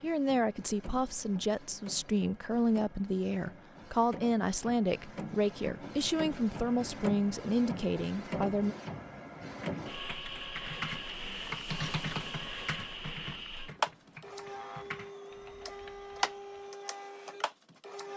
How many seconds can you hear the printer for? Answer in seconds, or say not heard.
18 s.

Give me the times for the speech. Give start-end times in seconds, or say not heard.
0.0-8.8.